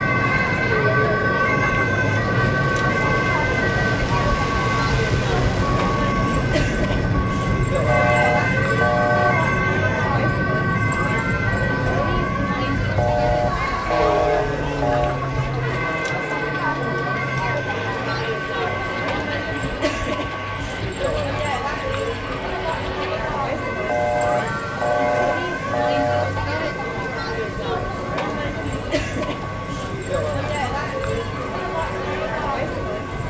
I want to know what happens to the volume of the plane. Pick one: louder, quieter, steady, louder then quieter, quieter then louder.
quieter.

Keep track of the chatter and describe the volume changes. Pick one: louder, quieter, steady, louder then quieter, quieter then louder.
steady.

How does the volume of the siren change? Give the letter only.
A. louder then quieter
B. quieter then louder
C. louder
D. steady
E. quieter
E.